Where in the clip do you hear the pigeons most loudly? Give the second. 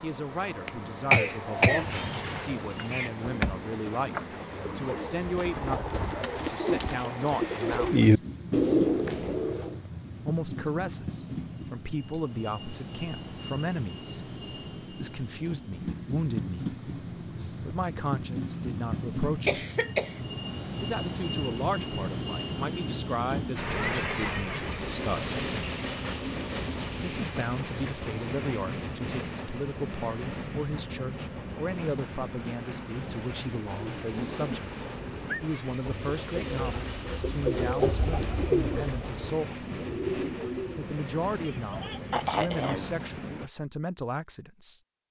8 s.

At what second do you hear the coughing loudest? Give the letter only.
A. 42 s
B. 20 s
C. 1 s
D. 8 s
C.